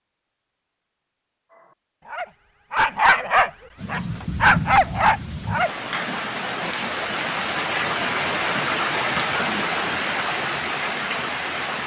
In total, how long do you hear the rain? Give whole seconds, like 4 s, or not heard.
8 s.